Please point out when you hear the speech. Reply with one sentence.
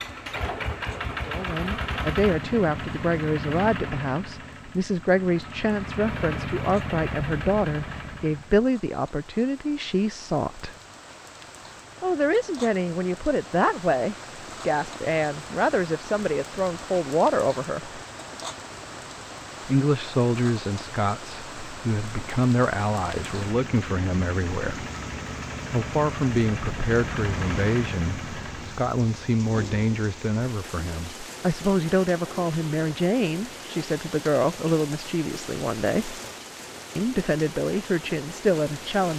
The speech can be heard from 1.2 to 10.8 s, from 12.0 to 18.0 s, from 19.6 to 24.9 s, from 25.7 to 36.2 s and from 37.0 to 39.1 s.